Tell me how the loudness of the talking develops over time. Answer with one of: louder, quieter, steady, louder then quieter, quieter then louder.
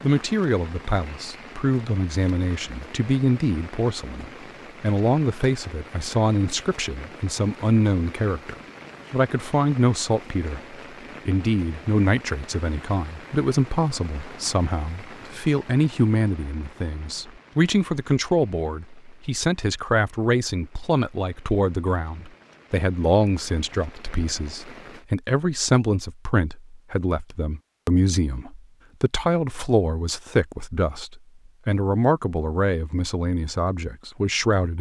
steady.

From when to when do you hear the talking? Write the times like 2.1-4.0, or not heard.
0.0-34.7.